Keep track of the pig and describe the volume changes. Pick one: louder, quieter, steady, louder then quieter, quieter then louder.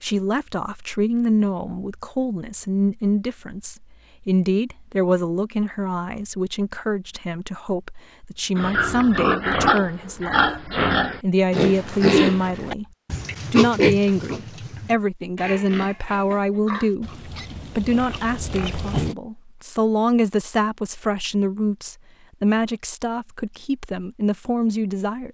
quieter.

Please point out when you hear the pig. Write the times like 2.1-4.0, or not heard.
8.6-19.1.